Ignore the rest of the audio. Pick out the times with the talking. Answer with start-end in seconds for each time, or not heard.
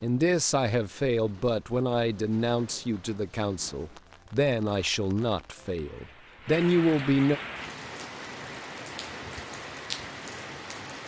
0.0-7.4.